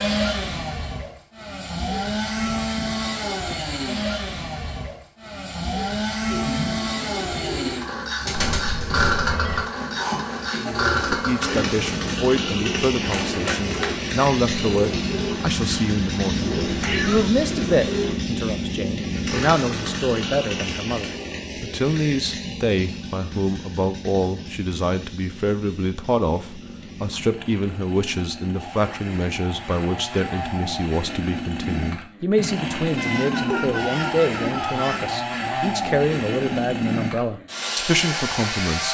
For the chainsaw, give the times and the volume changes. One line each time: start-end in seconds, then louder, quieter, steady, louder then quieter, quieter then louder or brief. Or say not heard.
0.0-38.9 quieter then louder.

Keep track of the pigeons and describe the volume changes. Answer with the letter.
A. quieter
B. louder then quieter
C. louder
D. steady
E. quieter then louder
D.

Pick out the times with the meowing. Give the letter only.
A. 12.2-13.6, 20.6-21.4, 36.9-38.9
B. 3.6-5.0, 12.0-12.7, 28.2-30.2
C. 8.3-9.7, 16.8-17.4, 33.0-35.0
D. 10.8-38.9
C.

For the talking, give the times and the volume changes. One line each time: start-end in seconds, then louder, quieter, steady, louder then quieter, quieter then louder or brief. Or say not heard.
10.8-38.9 steady.